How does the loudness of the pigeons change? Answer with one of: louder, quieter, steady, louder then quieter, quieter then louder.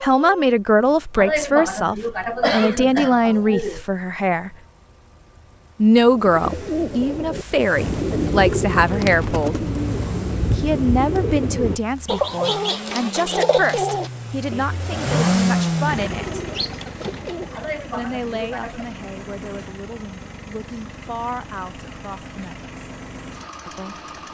quieter.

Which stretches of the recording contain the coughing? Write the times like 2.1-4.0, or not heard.
1.1-3.8, 17.5-18.9.